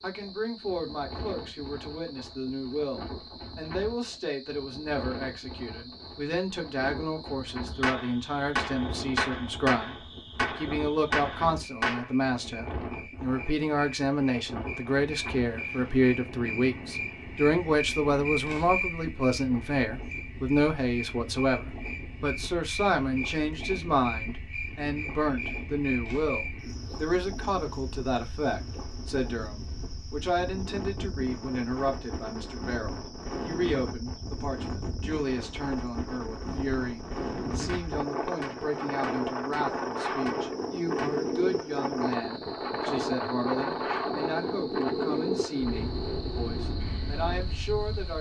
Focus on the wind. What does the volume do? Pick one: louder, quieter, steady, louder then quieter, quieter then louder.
louder.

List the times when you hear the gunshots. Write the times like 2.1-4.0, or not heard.
7.8-12.1, 37.6-41.3.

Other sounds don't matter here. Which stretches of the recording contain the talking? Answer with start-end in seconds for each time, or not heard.
0.0-48.1.